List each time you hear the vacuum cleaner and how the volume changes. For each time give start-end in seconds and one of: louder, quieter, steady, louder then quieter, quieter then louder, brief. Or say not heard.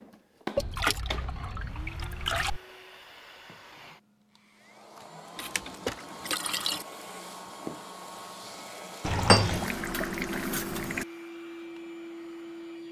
0.0-12.8 quieter then louder.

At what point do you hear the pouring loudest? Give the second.
9 s.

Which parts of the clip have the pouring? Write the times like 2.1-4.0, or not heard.
0.6-2.6, 5.3-6.8, 9.0-11.1.